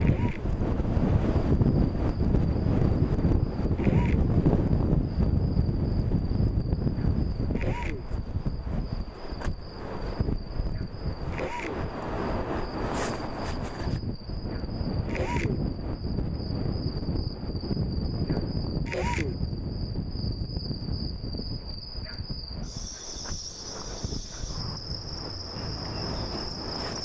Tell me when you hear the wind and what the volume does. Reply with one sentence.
You can hear the wind from 0.0 to 26.9 s, getting quieter.